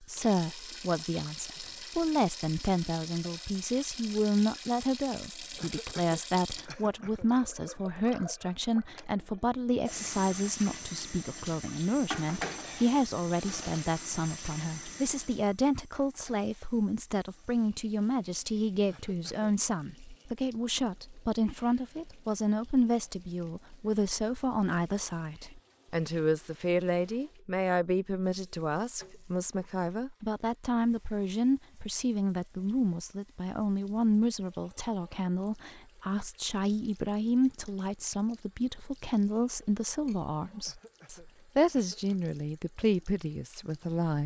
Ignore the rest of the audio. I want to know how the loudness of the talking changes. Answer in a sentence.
The loudness of the talking stays about the same.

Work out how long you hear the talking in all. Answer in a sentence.
The talking can be heard for 44 seconds in total.